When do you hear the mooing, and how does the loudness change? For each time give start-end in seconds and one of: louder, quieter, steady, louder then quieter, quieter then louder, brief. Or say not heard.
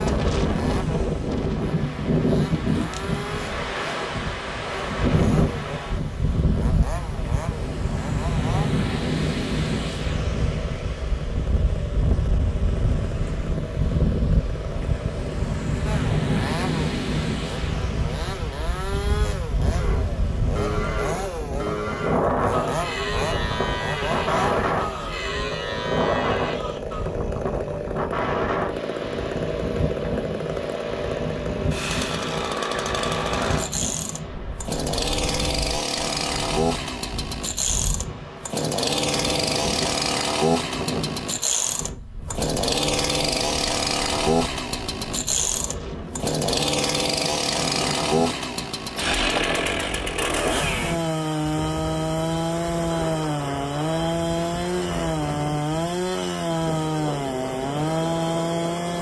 19.7-27.1 steady.